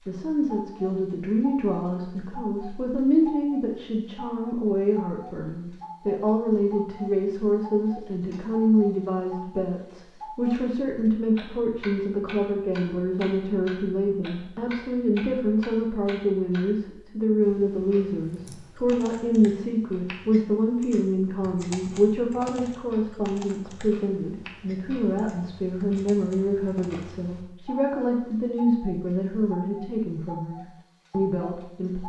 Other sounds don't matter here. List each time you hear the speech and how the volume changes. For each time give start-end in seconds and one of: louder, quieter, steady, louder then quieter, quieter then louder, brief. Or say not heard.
0.0-32.0 steady.